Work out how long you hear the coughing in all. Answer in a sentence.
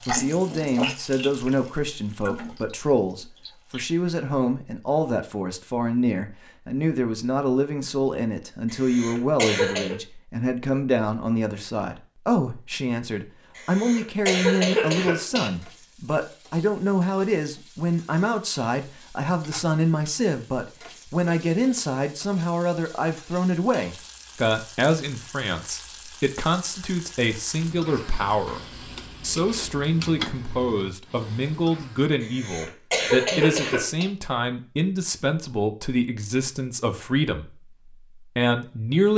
You can hear the coughing for 5 seconds altogether.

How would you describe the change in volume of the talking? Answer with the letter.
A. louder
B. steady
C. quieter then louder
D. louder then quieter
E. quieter
B.